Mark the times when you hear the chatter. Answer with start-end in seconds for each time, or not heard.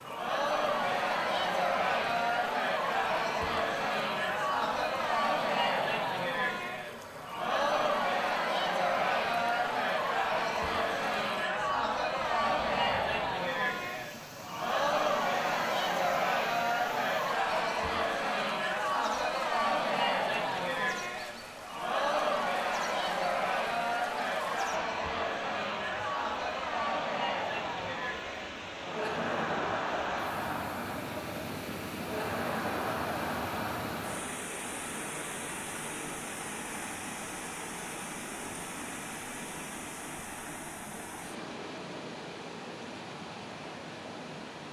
0.0-34.3.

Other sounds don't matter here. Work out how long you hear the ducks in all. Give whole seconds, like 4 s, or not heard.
not heard.